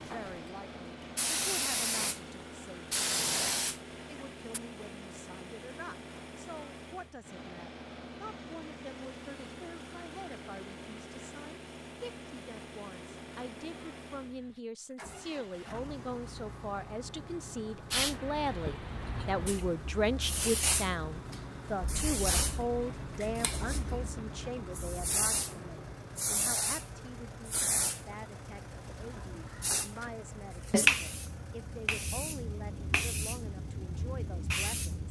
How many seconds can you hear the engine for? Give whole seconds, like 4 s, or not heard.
35 s.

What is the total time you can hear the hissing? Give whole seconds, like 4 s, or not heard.
22 s.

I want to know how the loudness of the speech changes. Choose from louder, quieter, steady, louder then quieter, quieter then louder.
louder then quieter.